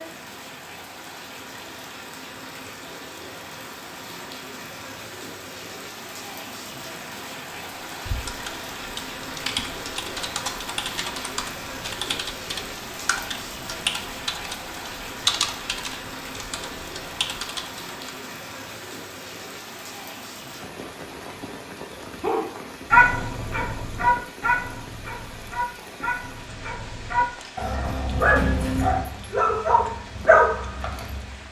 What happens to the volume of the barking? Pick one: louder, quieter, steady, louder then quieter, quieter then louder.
quieter then louder.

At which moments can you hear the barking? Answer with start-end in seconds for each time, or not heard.
22.2-31.4.